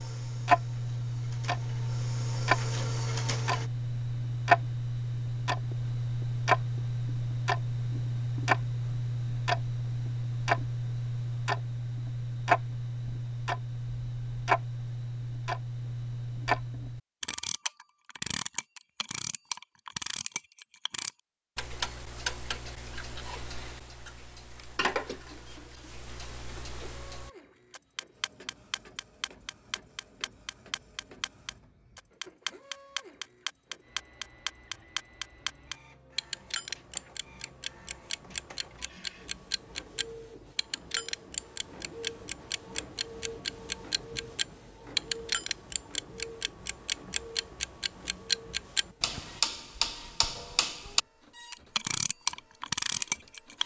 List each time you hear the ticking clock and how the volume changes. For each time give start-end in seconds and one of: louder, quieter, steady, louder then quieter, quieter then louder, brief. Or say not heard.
0.0-53.6 quieter then louder.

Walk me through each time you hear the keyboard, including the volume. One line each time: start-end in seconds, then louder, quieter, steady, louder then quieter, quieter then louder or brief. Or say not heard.
not heard.